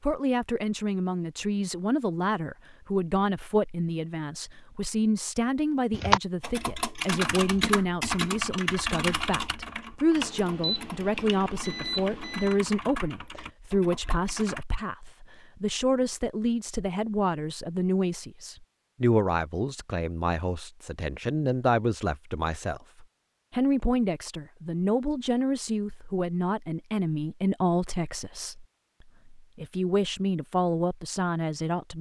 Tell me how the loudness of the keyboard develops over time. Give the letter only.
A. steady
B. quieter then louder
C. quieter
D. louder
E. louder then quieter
C.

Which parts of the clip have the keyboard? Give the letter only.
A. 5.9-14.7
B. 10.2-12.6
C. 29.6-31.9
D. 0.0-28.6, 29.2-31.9
A.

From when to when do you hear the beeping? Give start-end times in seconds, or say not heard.
10.2-12.6.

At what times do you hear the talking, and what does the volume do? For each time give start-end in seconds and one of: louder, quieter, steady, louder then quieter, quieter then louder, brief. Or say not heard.
0.0-28.6 steady
29.2-31.9 brief.